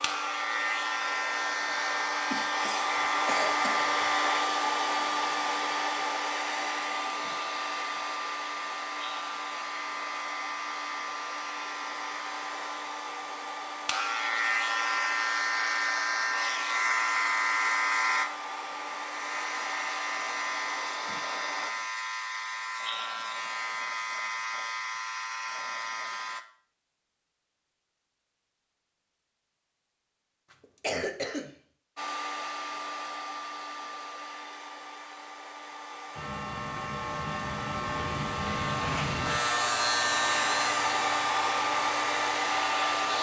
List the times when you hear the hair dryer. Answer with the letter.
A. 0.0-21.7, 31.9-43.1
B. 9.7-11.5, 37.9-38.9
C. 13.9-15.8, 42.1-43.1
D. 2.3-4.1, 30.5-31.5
A.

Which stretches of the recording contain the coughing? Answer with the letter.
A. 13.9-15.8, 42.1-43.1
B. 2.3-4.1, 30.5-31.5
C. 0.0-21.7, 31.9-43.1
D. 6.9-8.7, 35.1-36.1
B.